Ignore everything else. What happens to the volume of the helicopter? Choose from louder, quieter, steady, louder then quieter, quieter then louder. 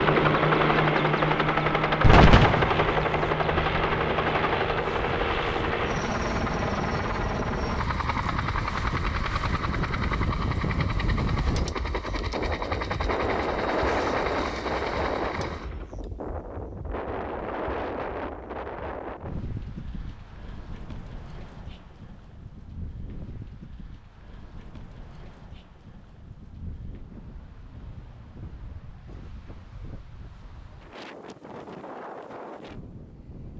quieter.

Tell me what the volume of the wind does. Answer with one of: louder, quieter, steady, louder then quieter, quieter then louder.
louder then quieter.